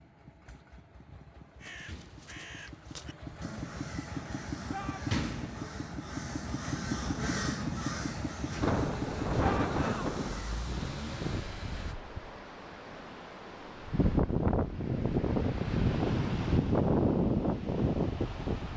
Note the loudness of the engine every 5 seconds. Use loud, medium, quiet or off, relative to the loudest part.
medium, loud, medium, off.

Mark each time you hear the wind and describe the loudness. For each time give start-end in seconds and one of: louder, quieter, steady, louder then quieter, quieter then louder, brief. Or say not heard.
8.6-18.7 quieter then louder.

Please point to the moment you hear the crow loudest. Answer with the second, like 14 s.
7 s.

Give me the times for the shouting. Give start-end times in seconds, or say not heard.
4.7-5.2, 9.4-10.1.